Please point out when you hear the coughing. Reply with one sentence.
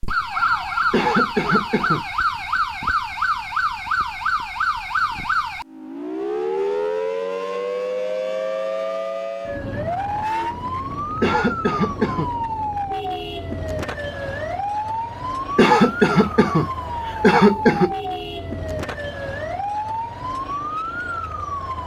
You can hear the coughing from 0.9 to 2.0 s, from 11.2 to 12.3 s and from 15.6 to 17.9 s.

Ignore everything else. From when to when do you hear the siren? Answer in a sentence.
The siren can be heard from 0.0 to 21.8 s.